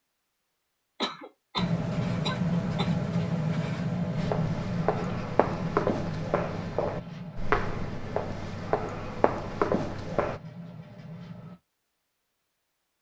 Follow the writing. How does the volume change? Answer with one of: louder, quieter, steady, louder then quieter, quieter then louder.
quieter.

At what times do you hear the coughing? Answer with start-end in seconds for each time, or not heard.
1.0-3.0.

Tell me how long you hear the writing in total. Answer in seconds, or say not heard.
10 s.